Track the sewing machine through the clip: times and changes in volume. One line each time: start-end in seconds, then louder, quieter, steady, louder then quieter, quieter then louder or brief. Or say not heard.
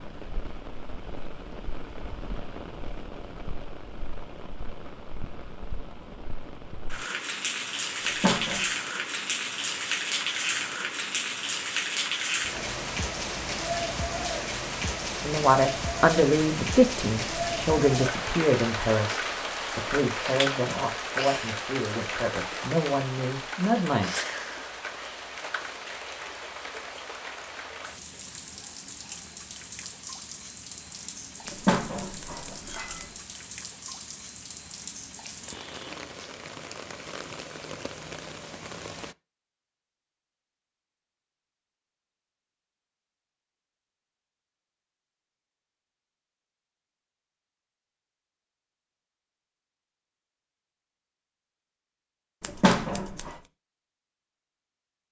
not heard.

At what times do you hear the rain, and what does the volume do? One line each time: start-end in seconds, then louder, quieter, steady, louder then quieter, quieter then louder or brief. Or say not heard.
0.0-39.1 louder then quieter.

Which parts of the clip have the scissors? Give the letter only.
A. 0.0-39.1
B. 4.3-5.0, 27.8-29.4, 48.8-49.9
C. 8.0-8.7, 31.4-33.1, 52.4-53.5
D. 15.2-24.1
C.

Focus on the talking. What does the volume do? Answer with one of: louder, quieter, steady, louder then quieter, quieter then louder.
quieter.